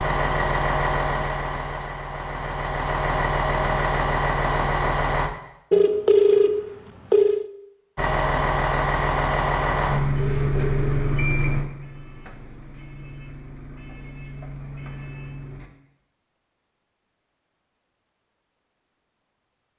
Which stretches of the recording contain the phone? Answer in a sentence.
The phone can be heard from 5.7 to 7.5 s and from 10.2 to 10.9 s.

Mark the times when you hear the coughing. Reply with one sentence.
The coughing can't be heard in this clip.